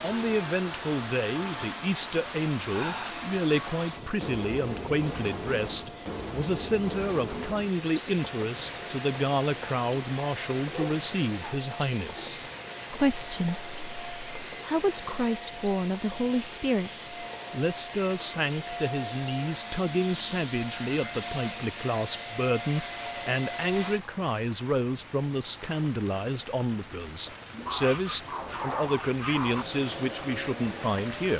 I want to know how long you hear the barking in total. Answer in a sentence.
The barking can be heard for 4 seconds in total.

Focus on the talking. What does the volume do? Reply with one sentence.
The loudness of the talking stays about the same.